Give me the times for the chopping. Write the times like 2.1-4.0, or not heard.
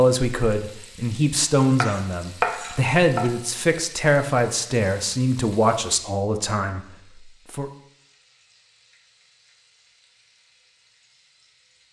1.8-3.3.